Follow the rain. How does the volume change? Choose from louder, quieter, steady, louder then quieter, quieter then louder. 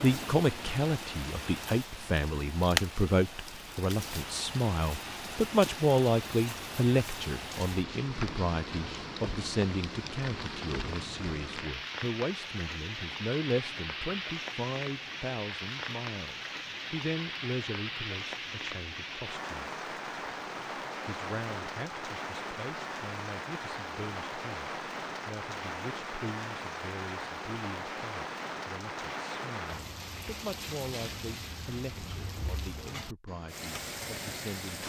steady.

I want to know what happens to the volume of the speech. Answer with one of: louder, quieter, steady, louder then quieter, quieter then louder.
quieter.